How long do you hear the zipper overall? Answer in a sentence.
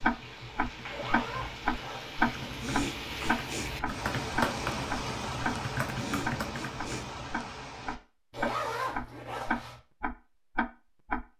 The zipper can be heard for 3 seconds in total.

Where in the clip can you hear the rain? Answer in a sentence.
The rain can be heard from 0.0 to 8.0 s.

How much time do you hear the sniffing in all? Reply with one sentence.
You can hear the sniffing for 2 seconds altogether.